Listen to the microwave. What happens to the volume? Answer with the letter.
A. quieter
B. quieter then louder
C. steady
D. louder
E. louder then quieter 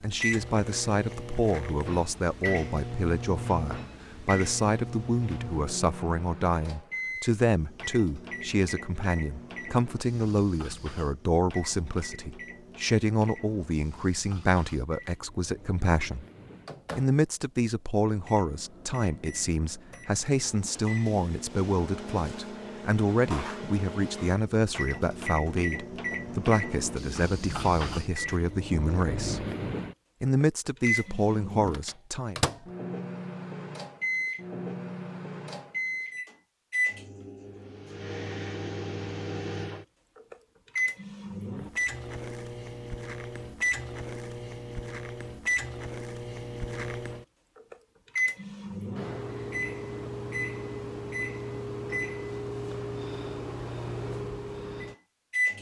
B.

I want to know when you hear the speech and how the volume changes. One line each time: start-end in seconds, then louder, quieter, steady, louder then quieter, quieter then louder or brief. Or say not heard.
0.0-16.2 steady
16.9-29.4 steady
30.2-32.4 brief.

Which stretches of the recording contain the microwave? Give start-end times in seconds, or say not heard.
0.0-55.5.